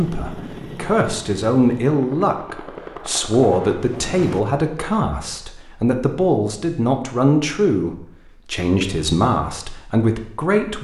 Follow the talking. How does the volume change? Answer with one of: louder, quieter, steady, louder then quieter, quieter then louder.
steady.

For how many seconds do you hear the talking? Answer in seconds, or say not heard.
11 s.